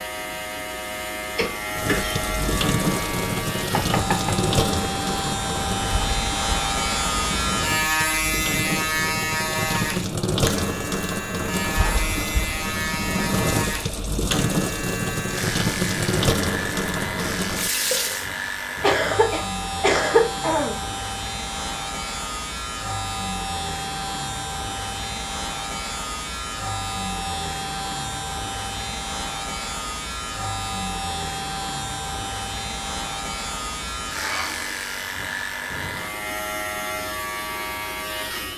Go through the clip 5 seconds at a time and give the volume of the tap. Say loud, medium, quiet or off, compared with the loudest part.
loud, medium, loud, loud, off, off, off, off.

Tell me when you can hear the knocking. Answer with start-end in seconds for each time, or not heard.
3.7-4.4.